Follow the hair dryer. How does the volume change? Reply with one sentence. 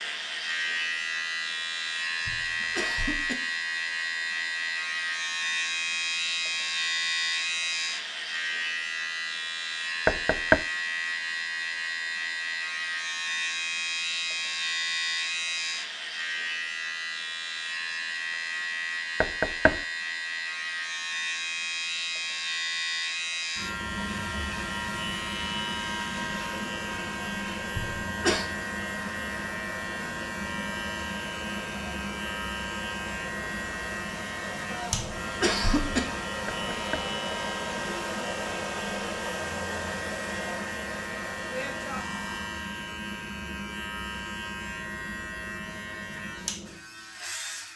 The loudness of the hair dryer goes up.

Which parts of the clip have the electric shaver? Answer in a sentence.
The electric shaver can be heard from 0.0 to 47.7 s.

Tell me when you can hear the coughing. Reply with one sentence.
The coughing can be heard from 2.2 to 3.4 s, from 27.8 to 28.4 s and from 34.9 to 36.0 s.